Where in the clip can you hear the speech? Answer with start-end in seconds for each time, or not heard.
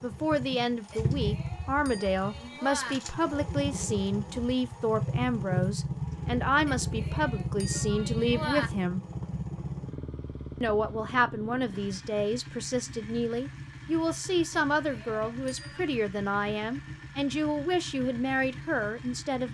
0.0-9.1, 10.6-19.4.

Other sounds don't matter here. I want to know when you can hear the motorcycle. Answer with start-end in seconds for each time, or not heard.
0.0-19.4.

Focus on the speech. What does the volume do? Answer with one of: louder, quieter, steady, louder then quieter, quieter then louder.
steady.